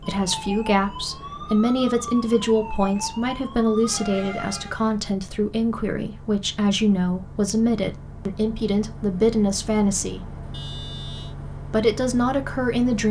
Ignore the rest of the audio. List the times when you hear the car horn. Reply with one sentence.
The car horn can be heard from 10.5 to 11.3 s.